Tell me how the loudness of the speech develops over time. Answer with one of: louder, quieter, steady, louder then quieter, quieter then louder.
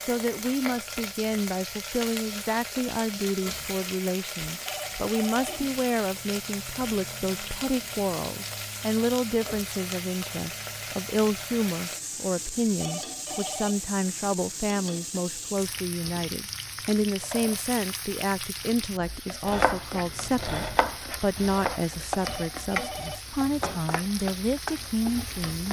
steady.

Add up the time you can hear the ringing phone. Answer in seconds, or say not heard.
3 s.